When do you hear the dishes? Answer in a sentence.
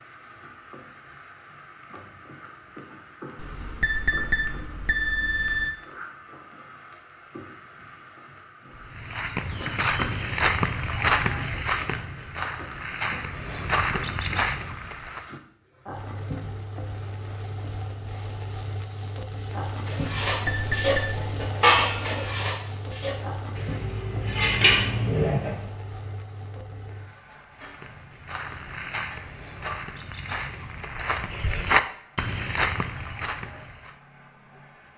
The dishes can be heard from 19.9 to 25.6 s.